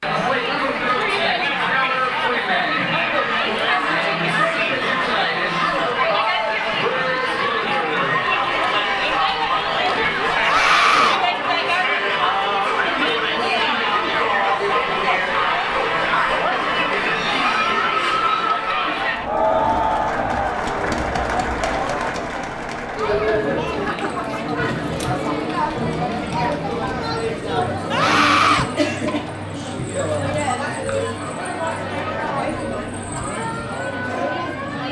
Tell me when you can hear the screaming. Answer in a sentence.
You can hear the screaming from 10.4 to 11.2 s and from 27.9 to 28.6 s.